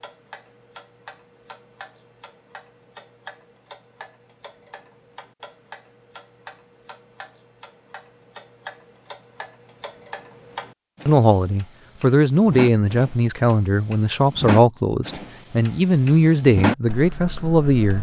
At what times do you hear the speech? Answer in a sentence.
You can hear the speech from 11.1 to 17.9 s.